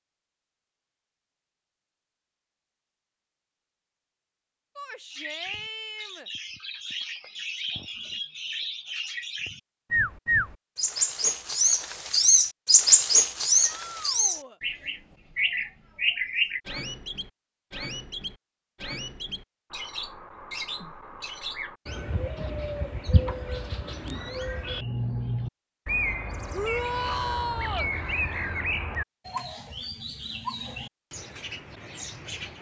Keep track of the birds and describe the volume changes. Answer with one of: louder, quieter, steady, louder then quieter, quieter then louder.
louder then quieter.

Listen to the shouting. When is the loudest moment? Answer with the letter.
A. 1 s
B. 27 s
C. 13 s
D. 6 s
B.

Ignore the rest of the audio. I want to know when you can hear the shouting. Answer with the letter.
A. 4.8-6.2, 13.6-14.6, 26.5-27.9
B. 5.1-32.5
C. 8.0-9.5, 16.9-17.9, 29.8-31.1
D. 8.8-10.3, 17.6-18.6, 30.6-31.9
A.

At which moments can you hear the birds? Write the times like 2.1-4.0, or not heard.
5.1-32.5.